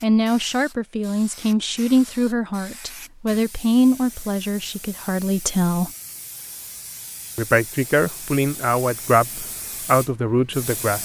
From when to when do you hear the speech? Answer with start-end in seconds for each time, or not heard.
0.0-5.9, 7.3-10.9.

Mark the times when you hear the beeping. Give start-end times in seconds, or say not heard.
not heard.